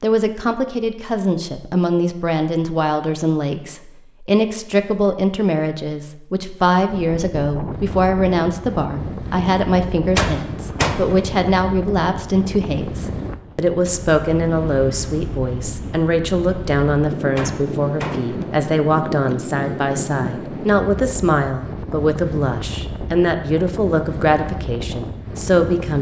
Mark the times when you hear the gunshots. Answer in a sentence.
You can hear the gunshots from 10.2 to 11.2 s and from 17.4 to 18.4 s.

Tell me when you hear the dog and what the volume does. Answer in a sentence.
The dog can't be heard in this clip.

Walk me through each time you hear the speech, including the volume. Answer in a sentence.
You can hear the speech from 0.0 to 25.9 s, at a steady volume.